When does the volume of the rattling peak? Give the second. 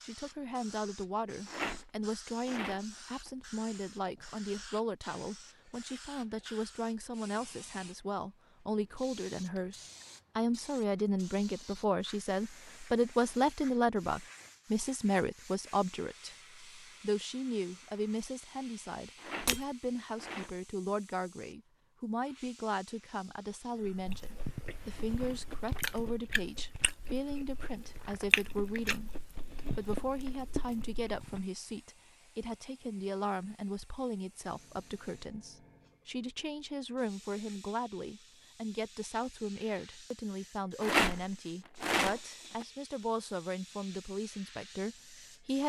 41 s.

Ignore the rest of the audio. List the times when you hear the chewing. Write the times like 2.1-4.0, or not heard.
23.9-31.4.